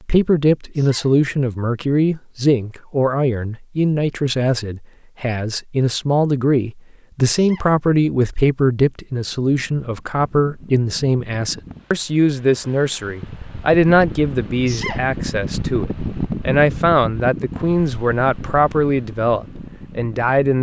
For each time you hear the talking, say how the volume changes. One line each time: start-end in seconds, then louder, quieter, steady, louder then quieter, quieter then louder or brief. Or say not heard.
0.1-20.5 steady.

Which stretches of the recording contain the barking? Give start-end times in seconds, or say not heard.
not heard.